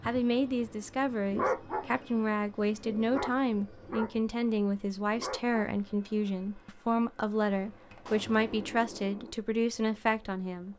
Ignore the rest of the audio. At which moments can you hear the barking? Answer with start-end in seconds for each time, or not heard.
1.2-1.9, 2.5-4.2, 5.0-5.6.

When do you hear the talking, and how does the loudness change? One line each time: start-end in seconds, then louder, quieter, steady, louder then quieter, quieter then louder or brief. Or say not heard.
0.0-10.7 steady.